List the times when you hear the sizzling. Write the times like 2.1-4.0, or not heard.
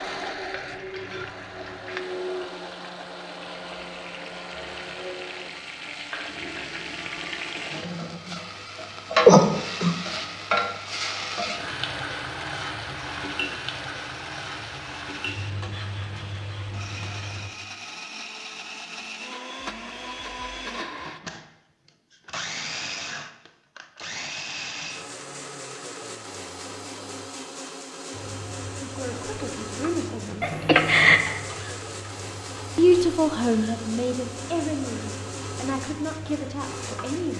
0.2-17.5, 28.1-37.3.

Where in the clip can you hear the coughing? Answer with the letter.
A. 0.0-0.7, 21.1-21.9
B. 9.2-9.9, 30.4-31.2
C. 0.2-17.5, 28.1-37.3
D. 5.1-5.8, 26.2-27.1
B.